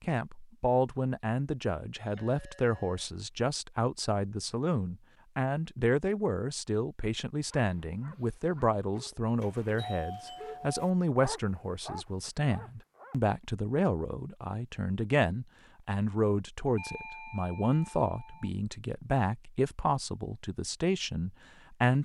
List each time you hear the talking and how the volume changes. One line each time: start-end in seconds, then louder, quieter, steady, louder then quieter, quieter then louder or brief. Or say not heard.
0.0-21.9 steady.